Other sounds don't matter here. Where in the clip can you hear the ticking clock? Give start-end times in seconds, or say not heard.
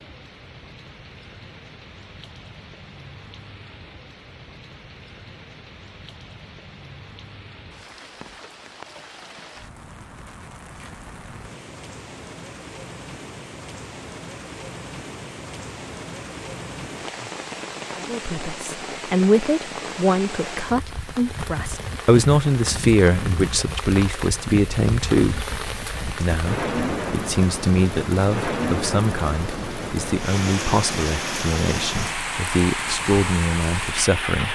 not heard.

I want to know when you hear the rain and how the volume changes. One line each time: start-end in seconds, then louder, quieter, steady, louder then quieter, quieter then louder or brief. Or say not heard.
0.0-34.5 louder.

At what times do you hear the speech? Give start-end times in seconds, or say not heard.
18.0-34.5.